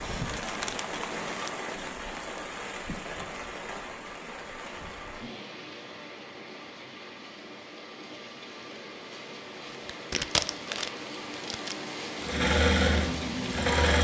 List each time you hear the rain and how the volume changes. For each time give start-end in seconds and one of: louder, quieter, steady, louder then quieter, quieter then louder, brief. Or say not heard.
0.0-13.8 quieter then louder.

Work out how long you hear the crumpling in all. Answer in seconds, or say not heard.
3 s.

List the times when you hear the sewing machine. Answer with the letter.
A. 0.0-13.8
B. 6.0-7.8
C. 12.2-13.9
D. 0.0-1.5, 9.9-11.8
C.